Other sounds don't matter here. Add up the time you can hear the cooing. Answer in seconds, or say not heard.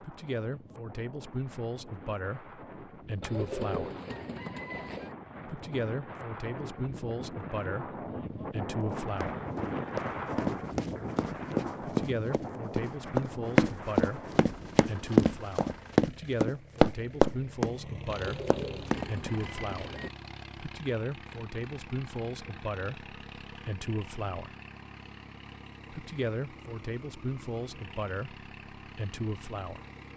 4 s.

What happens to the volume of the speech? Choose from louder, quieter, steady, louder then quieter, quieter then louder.
steady.